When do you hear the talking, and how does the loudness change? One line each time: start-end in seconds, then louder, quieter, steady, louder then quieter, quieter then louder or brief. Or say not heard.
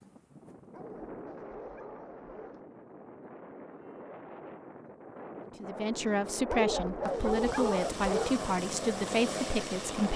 5.5-10.1 steady.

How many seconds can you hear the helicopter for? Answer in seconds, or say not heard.
3 s.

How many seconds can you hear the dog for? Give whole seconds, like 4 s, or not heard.
4 s.